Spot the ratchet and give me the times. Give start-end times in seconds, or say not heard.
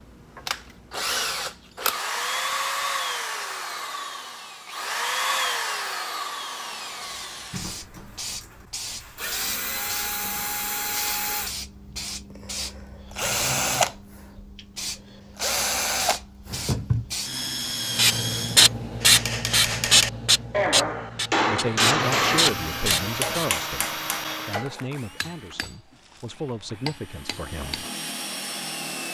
not heard.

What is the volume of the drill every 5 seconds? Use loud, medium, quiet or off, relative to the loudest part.
loud, loud, loud, loud, loud, medium.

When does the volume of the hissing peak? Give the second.
19 s.